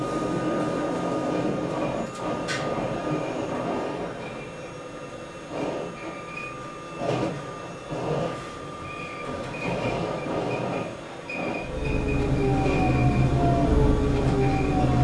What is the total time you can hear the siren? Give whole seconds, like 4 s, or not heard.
3 s.